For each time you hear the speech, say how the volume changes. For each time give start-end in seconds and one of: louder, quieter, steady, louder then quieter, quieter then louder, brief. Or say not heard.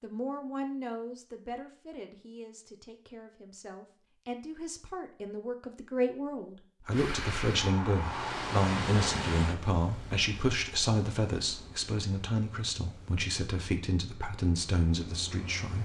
0.0-15.7 louder.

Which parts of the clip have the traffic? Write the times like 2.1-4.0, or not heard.
6.9-15.7.